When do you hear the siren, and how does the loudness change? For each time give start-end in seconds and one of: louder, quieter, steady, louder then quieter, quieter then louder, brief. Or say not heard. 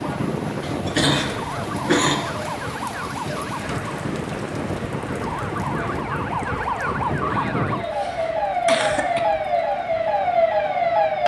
0.0-11.2 louder.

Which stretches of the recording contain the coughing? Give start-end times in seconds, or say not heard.
0.6-2.2, 7.3-9.2.